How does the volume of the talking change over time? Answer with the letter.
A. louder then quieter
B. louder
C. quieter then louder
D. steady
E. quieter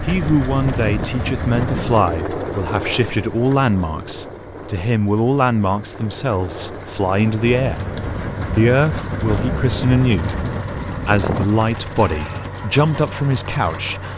D.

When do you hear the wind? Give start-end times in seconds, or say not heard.
0.0-11.5.